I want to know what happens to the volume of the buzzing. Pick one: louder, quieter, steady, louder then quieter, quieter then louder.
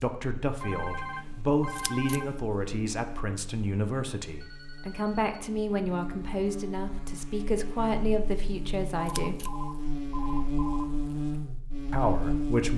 louder.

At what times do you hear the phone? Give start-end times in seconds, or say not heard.
0.6-2.4, 4.3-5.3, 9.0-10.8.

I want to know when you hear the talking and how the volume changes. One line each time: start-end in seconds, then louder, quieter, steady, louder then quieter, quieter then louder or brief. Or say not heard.
0.0-9.4 steady
11.9-12.7 brief.